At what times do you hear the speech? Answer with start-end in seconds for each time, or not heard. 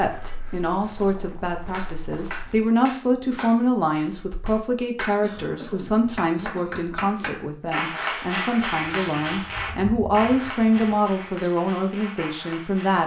0.0-13.0.